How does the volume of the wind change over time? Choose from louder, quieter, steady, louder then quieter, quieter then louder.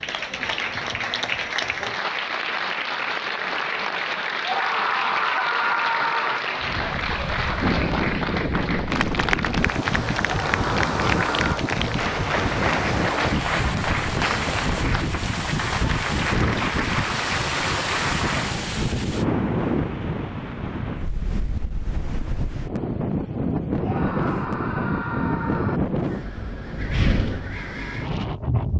steady.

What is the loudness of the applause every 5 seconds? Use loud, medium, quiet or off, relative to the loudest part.
loud, loud, loud, loud, off, off.